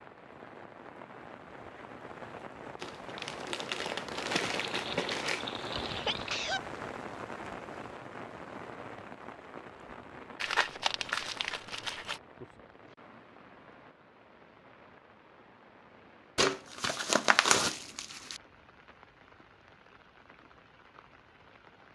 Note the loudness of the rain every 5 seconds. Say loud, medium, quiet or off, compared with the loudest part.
loud, loud, medium, quiet, quiet.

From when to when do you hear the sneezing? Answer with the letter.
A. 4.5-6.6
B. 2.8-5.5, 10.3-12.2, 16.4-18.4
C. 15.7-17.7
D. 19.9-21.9
A.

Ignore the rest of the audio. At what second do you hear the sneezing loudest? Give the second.
6 s.